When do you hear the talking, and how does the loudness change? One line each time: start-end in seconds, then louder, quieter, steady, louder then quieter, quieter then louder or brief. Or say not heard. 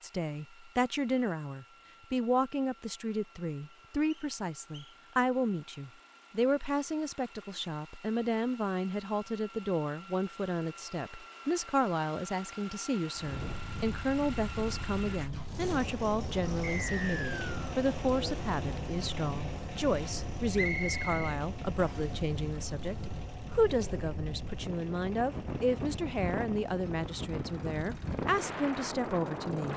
0.0-29.7 steady.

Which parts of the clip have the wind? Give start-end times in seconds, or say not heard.
13.2-29.7.